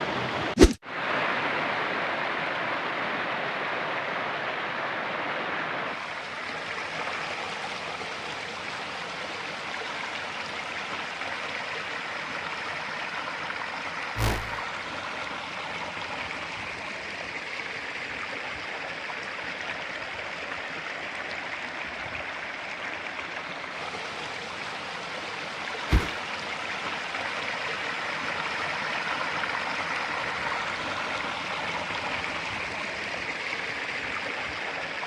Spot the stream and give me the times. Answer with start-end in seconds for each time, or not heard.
0.0-35.0.